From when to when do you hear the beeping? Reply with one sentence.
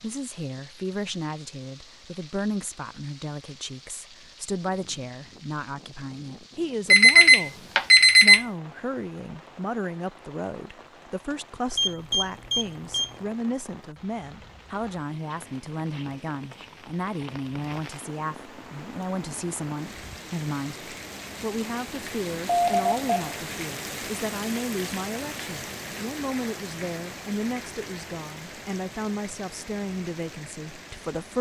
The beeping can be heard from 6.9 to 8.4 s, from 11.8 to 13.2 s and from 22.4 to 23.4 s.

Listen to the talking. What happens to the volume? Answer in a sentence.
The volume of the talking stays about the same.